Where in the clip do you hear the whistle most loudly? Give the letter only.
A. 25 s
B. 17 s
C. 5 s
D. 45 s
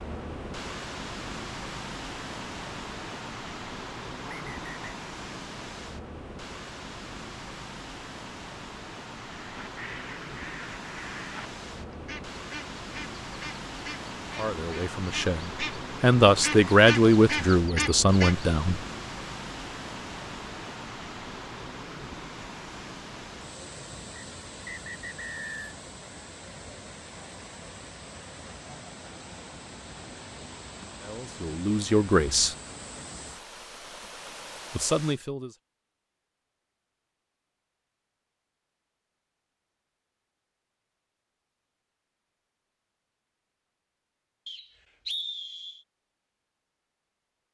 D.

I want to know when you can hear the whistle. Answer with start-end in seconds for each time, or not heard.
4.2-5.0, 24.1-25.5, 44.5-45.9.